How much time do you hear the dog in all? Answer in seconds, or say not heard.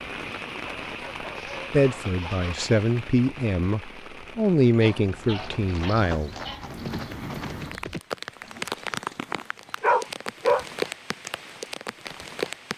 5 s.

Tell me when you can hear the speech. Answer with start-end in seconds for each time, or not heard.
1.7-6.3.